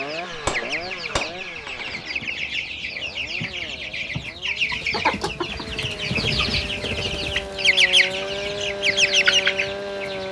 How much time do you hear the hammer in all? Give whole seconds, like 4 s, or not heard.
2 s.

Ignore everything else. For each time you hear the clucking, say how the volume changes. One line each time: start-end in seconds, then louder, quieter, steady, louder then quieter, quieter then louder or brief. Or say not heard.
0.0-10.2 louder.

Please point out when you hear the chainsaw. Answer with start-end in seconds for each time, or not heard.
0.0-10.2.